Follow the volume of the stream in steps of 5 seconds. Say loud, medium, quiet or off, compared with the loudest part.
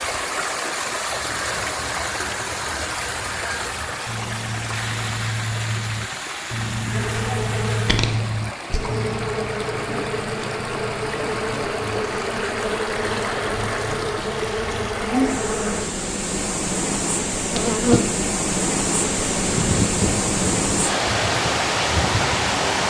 medium, medium, medium, loud, loud.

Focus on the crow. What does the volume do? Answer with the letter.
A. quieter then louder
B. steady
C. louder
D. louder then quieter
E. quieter
C.